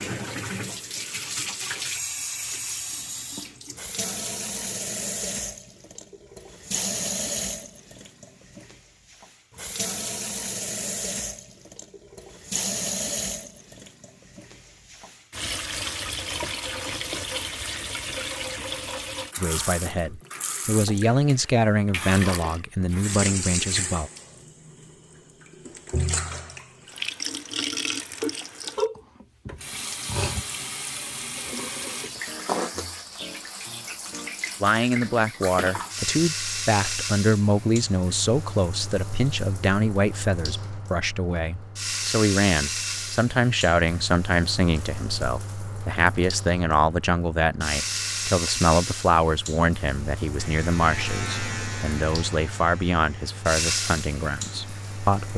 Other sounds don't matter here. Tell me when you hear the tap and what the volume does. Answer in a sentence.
You can hear the tap from 0.0 to 55.3 s, at a steady volume.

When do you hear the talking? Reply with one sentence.
You can hear the talking from 19.4 to 24.1 s and from 34.6 to 55.3 s.